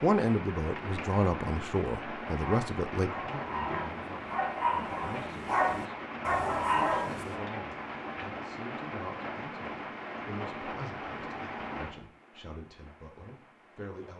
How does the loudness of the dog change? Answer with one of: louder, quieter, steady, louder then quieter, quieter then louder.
louder.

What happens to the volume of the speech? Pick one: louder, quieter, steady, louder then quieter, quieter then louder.
quieter.